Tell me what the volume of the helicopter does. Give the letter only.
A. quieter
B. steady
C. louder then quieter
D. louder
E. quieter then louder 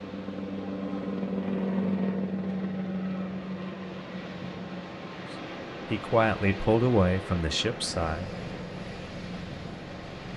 A.